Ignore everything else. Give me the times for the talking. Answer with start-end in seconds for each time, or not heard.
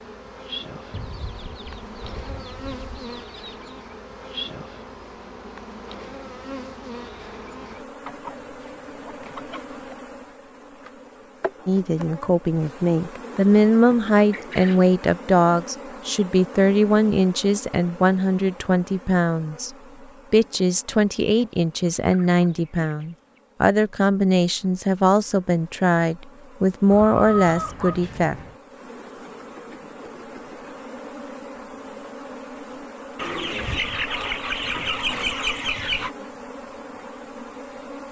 11.7-19.7, 20.3-28.4.